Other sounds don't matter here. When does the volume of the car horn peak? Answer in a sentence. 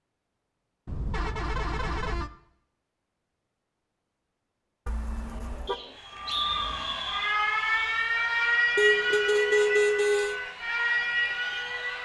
The loudest moment of the car horn is at 10 seconds.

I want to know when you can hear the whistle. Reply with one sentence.
The whistle can be heard from 5.7 to 7.3 s.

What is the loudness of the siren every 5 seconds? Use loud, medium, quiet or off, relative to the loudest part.
off, loud, loud.